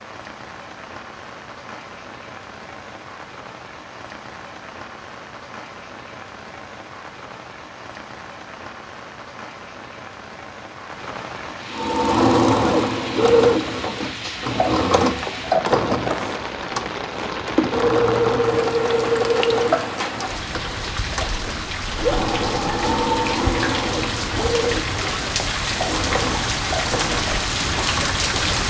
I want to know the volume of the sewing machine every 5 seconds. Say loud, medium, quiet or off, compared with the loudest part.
off, off, loud, loud, medium, medium.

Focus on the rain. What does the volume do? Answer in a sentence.
The loudness of the rain goes up.